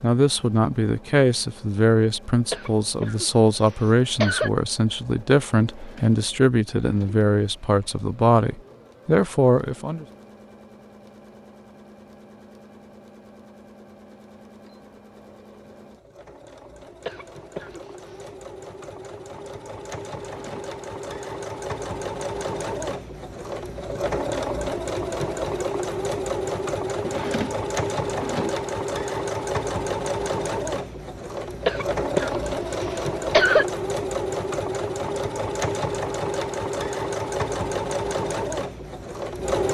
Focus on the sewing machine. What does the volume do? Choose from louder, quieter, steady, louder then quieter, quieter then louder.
louder.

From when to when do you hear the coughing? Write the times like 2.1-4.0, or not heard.
2.5-4.5, 17.1-17.8, 31.6-33.6.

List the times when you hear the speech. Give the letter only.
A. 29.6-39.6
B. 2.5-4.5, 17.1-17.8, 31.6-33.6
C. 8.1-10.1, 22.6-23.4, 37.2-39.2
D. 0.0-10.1
D.